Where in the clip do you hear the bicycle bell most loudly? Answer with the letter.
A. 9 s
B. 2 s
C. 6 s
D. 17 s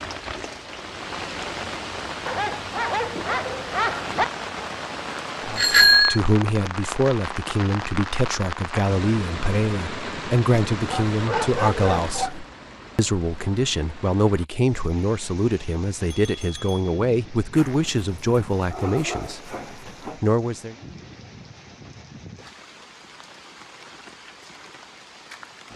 C.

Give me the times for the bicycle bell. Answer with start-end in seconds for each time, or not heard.
5.5-6.2, 16.1-16.8.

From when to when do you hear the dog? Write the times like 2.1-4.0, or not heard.
2.2-4.2, 10.8-12.4, 17.5-20.2.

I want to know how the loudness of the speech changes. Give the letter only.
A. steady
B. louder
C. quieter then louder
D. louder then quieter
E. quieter
A.